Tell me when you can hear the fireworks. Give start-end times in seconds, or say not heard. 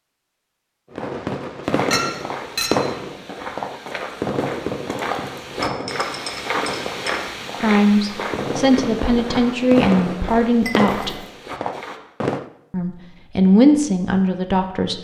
0.9-12.5.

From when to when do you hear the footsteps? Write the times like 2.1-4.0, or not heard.
1.6-12.0.